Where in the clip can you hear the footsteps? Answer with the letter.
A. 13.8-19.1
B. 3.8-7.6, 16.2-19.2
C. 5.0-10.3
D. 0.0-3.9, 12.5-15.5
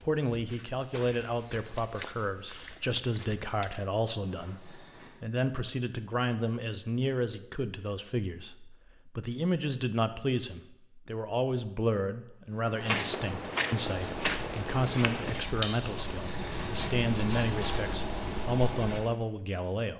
D.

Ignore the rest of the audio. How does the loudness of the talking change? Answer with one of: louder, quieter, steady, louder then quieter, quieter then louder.
steady.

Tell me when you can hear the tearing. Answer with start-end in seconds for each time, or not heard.
4.0-5.2, 15.8-16.9.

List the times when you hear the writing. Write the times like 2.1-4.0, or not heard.
13.8-19.1.